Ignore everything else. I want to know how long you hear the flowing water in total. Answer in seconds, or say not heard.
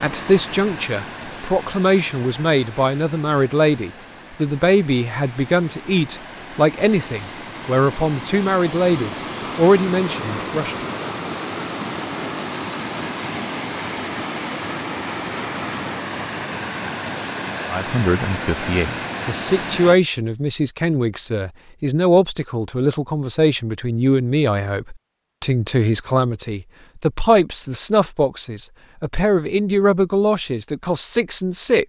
20 s.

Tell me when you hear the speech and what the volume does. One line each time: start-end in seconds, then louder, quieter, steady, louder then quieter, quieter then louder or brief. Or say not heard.
0.0-10.8 steady
17.7-31.8 steady.